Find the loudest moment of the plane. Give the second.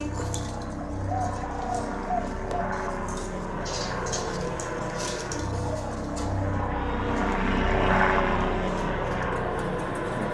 8 s.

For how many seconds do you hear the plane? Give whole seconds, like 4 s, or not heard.
10 s.